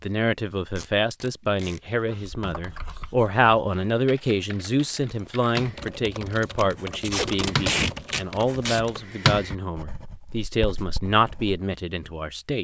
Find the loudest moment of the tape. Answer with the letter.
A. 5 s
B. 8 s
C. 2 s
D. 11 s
B.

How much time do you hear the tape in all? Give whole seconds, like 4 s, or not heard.
3 s.